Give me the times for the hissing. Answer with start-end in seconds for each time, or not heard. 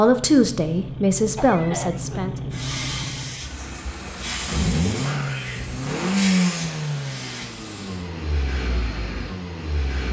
2.5-8.1.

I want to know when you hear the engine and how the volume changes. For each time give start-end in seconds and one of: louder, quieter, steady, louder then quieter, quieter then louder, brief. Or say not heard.
0.0-10.0 louder then quieter.